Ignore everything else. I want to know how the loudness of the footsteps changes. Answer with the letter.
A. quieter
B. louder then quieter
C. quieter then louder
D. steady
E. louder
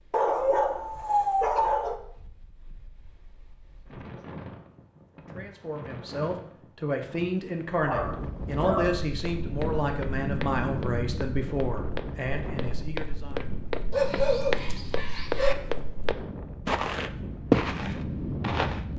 E.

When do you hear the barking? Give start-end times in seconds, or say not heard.
0.1-2.0, 7.8-9.0, 13.9-15.6.